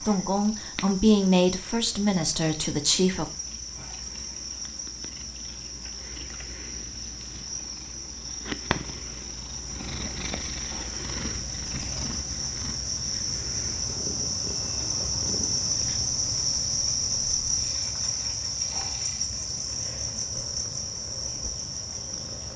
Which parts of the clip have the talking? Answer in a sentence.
You can hear the talking from 0.0 to 3.2 s.